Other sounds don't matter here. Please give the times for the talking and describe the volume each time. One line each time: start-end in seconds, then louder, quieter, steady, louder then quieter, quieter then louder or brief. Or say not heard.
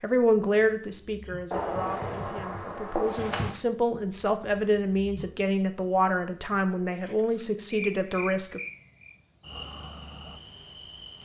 0.0-8.6 quieter then louder.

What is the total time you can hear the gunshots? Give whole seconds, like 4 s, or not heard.
2 s.